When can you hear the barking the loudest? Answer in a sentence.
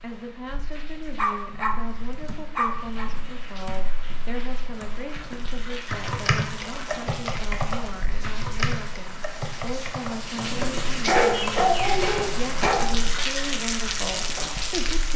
The loudest moment of the barking is at 11 seconds.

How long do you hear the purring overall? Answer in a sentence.
You can't hear the purring here.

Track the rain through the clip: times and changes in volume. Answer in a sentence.
The rain can be heard from 0.0 to 15.1 s, getting louder.